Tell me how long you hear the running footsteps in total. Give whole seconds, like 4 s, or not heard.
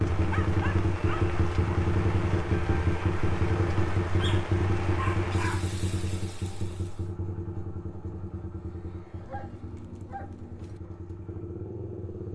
not heard.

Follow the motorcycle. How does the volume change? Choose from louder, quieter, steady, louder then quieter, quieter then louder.
quieter.